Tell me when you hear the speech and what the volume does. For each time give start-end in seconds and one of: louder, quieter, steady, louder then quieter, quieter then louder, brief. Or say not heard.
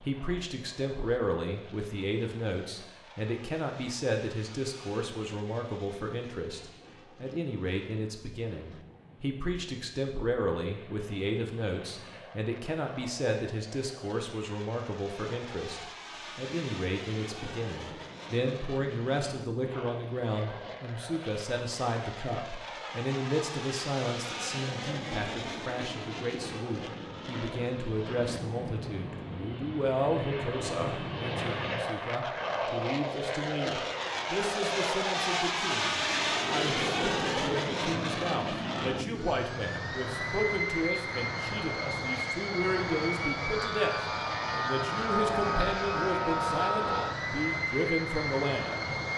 0.0-48.9 steady.